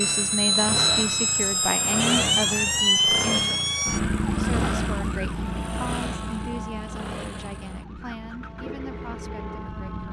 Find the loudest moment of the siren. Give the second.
3 s.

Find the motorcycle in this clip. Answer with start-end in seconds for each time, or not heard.
0.0-9.8.